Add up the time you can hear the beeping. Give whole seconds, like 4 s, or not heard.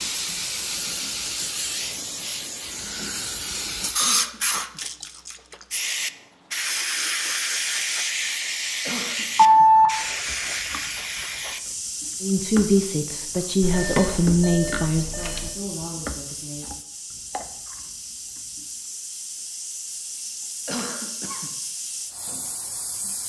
3 s.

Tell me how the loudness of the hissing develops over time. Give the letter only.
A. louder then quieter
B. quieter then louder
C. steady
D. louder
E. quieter
E.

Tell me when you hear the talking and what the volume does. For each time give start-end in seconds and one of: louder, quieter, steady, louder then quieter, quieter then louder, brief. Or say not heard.
12.2-16.7 quieter.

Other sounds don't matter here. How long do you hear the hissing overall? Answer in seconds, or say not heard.
23 s.